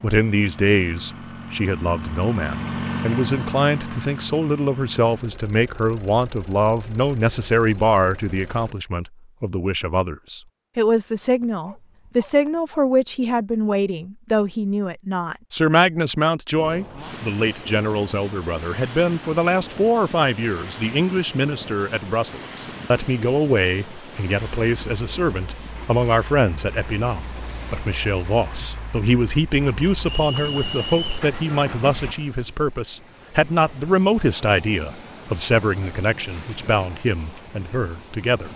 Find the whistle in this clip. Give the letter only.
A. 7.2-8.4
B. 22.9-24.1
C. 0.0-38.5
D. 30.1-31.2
D.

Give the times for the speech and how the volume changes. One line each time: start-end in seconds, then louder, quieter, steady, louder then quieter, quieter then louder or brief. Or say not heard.
0.0-38.5 steady.